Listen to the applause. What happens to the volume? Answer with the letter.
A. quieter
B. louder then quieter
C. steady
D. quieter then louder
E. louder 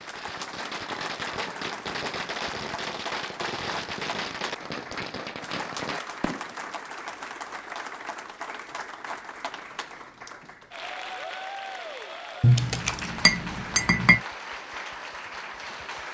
C.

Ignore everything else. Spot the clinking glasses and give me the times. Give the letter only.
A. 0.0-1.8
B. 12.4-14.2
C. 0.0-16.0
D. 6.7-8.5
B.